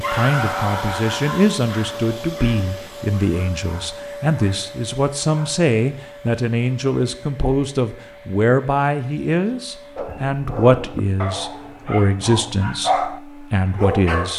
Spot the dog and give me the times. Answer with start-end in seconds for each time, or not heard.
0.0-5.7, 9.9-14.3.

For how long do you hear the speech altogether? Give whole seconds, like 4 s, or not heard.
14 s.